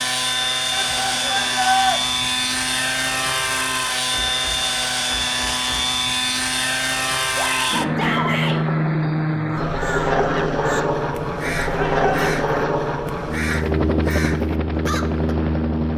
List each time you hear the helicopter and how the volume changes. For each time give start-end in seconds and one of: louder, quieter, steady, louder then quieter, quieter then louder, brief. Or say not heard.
0.0-15.9 steady.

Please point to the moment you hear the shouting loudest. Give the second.
2 s.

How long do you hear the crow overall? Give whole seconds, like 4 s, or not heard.
6 s.